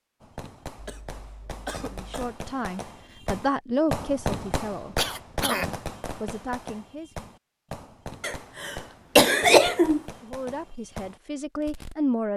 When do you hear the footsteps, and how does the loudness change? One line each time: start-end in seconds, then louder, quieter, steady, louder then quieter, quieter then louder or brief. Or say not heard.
not heard.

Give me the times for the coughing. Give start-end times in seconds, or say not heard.
0.8-2.4, 5.0-5.7, 8.2-10.0.